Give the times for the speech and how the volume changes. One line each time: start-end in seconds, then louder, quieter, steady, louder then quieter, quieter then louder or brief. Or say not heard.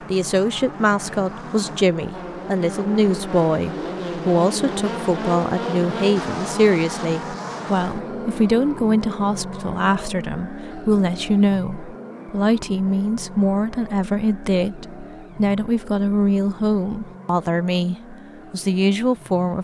0.1-19.6 steady.